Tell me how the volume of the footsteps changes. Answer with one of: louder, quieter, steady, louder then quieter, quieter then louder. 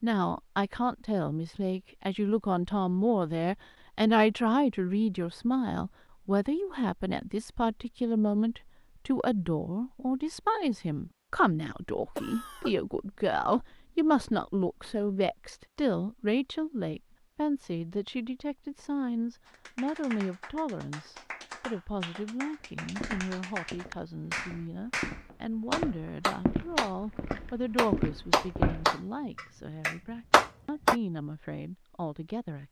louder.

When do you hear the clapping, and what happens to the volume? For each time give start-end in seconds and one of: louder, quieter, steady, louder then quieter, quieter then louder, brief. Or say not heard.
19.4-30.9 louder.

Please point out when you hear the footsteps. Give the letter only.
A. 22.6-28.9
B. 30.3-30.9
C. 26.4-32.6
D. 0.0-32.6
A.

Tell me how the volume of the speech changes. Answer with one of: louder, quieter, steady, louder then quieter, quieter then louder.
quieter.